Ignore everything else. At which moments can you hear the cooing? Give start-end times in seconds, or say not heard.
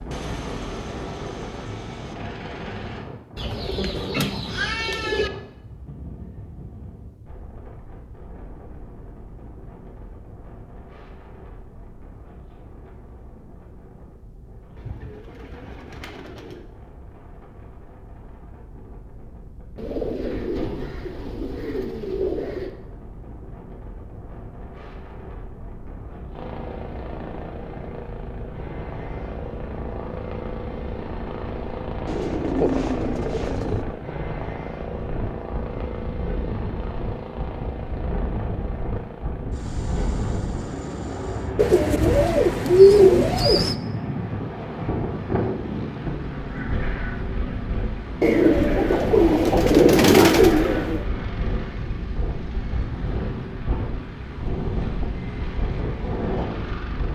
3.4-5.3, 14.8-16.6, 19.8-22.7, 32.0-33.9, 41.5-43.8, 48.2-51.0.